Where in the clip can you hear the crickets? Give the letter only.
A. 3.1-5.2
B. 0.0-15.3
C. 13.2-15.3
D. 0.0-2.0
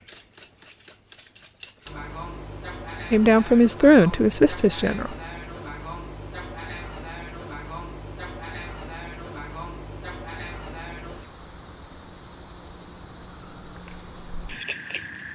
B.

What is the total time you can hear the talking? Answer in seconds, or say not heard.
2 s.